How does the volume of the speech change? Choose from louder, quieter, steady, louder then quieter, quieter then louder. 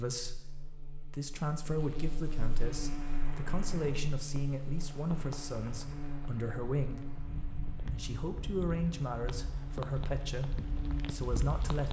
steady.